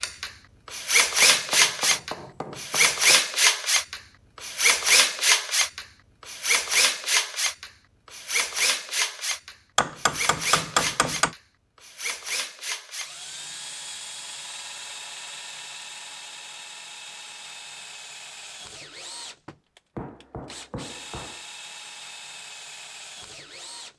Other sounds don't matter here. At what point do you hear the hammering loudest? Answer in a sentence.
The volume of the hammering peaks at 11 seconds.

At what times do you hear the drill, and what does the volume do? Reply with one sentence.
You can hear the drill from 0.0 to 23.9 s, getting quieter.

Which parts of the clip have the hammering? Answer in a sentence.
The hammering can be heard from 1.2 to 3.2 s, from 9.8 to 11.3 s and from 19.9 to 21.4 s.